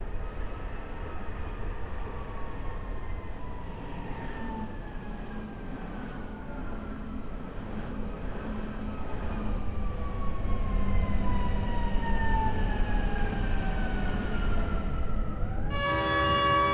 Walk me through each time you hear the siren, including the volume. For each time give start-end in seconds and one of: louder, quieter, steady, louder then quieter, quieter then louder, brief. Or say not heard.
0.0-16.7 louder.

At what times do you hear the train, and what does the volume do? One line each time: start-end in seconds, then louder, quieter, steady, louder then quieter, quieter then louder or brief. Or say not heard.
0.0-16.7 louder.